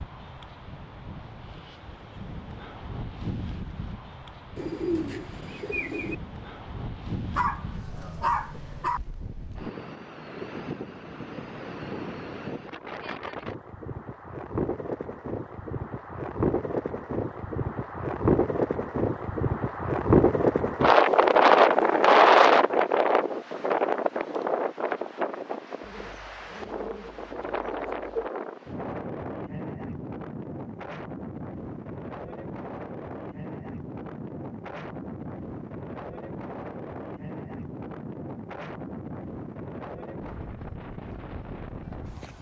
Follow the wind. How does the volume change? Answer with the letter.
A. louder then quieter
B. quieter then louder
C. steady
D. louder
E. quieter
A.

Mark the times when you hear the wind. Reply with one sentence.
The wind can be heard from 0.0 to 42.3 s.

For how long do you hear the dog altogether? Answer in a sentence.
The dog can be heard for 2 seconds in total.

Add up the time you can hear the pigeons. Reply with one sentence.
You can hear the pigeons for 4 seconds altogether.